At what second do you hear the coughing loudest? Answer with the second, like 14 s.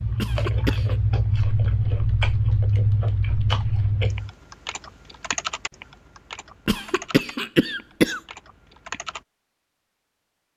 8 s.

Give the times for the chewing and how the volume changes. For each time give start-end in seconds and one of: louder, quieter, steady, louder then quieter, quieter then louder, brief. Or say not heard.
0.0-4.3 steady.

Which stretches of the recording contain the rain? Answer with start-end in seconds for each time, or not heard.
not heard.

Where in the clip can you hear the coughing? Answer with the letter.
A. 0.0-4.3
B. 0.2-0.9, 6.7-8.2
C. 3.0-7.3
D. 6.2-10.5
B.